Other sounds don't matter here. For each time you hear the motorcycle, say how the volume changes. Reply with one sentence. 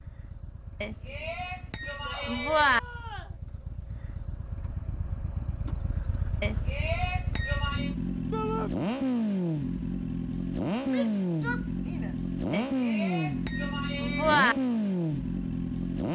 The motorcycle can be heard from 0.0 to 16.0 s, getting louder.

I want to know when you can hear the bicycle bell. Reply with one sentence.
The bicycle bell can be heard from 0.8 to 2.8 s, from 6.4 to 8.0 s and from 12.5 to 14.6 s.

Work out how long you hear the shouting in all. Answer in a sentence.
The shouting can be heard for 3 seconds in total.